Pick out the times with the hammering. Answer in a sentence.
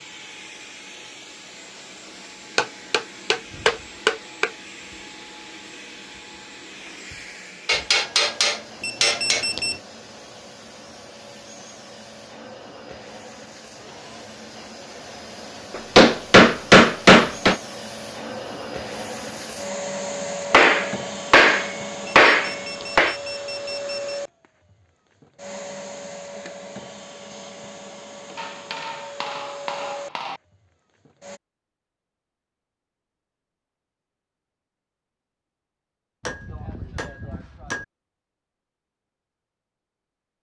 The hammering can be heard from 2.5 to 4.5 s, from 7.7 to 9.4 s, from 15.8 to 17.6 s, from 20.5 to 23.1 s, from 28.4 to 30.4 s and from 36.2 to 37.9 s.